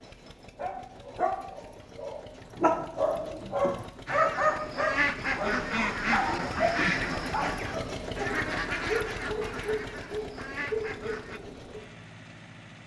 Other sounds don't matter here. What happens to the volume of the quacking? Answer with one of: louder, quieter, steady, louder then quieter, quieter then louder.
quieter.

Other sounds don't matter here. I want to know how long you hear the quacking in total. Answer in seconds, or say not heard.
7 s.